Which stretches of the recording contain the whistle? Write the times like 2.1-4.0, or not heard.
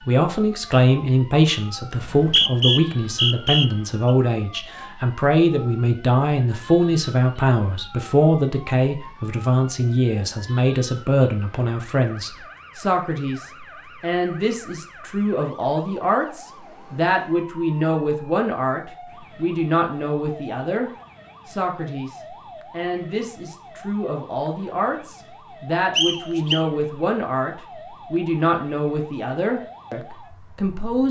1.9-4.2, 25.9-26.6.